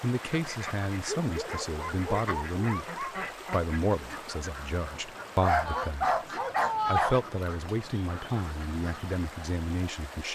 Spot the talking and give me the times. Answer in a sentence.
You can hear the talking from 0.0 to 6.1 s and from 6.8 to 10.3 s.